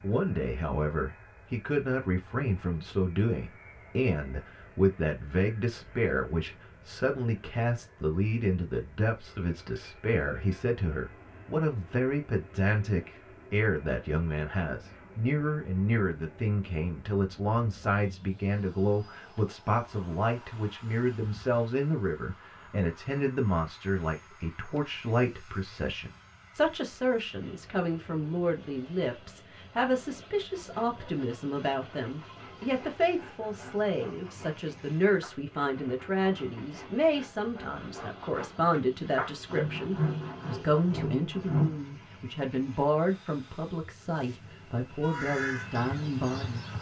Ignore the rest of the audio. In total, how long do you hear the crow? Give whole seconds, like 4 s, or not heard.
2 s.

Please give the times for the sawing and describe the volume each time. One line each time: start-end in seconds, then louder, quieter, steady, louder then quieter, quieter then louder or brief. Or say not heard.
30.6-41.8 louder.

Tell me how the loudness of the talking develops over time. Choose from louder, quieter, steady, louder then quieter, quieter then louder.
steady.